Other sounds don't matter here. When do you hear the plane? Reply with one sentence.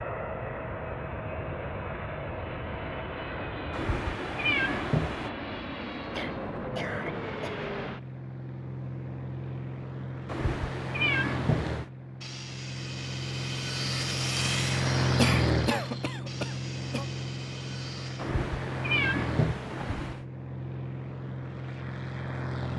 You can hear the plane from 0.0 to 22.7 s.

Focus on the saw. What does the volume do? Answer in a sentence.
The volume of the saw goes up, then down.